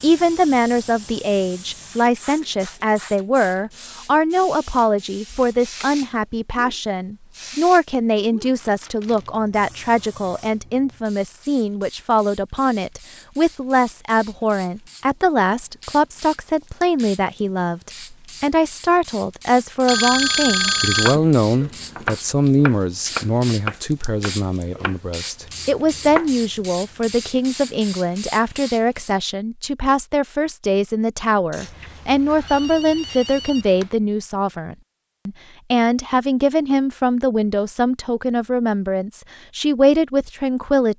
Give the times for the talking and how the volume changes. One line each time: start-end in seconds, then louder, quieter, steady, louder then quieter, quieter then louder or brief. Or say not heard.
0.0-40.9 steady.